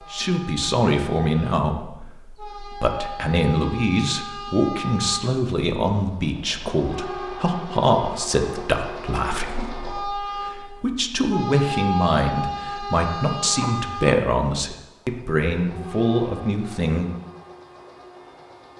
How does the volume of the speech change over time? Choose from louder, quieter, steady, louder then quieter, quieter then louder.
steady.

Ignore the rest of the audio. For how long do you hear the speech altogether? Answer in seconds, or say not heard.
17 s.